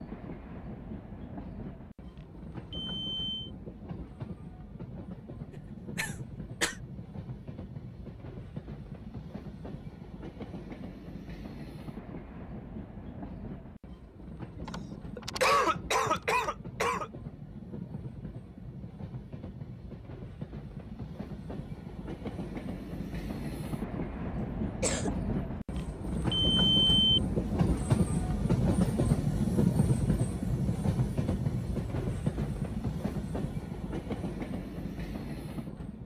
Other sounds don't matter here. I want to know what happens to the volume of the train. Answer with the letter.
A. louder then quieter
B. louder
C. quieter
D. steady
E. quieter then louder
B.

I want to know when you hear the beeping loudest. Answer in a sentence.
The volume of the beeping peaks at 27 seconds.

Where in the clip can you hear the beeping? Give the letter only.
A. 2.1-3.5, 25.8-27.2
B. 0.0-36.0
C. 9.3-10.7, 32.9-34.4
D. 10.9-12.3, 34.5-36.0
A.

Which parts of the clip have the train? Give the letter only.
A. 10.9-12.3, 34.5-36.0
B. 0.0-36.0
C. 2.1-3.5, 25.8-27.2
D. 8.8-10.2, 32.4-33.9
B.